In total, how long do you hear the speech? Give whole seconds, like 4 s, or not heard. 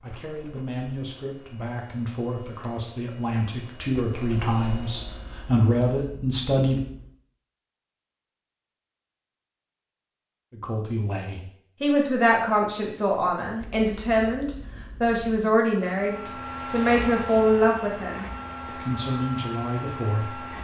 17 s.